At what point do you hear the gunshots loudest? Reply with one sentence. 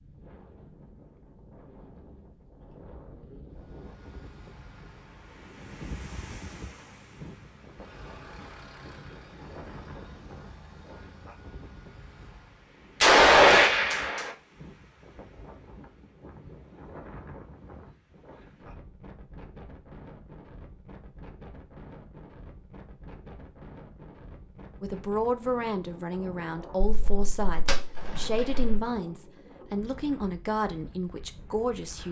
The loudest moment of the gunshots is at 13 seconds.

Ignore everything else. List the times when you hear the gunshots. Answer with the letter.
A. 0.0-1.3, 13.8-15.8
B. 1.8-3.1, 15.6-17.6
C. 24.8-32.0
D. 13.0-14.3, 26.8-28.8
D.